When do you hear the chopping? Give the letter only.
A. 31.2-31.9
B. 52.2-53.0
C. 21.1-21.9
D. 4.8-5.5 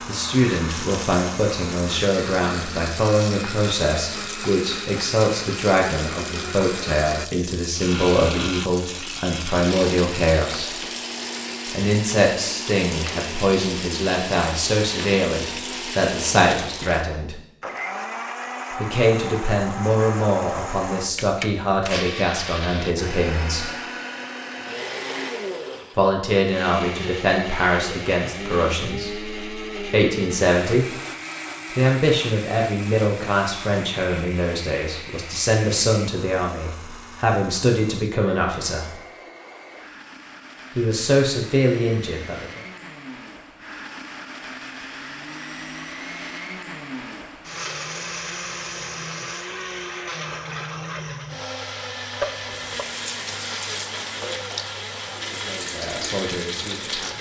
B.